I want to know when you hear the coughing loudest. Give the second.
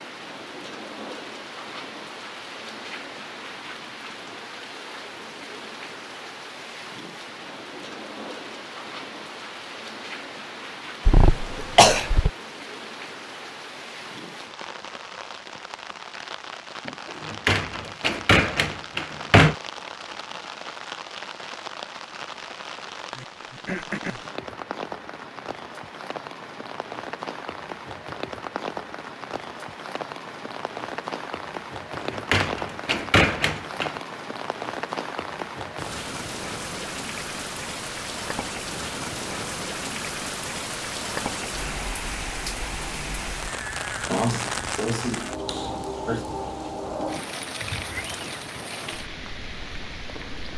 12 s.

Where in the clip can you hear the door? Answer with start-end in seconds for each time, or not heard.
17.1-19.6, 31.9-34.0.